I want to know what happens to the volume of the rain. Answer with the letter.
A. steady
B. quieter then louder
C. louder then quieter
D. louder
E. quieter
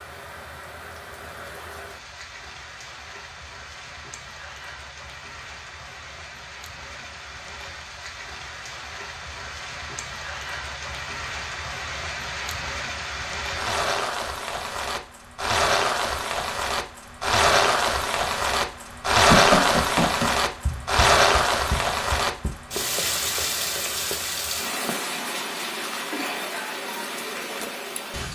C.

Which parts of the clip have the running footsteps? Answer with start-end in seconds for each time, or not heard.
19.2-24.2.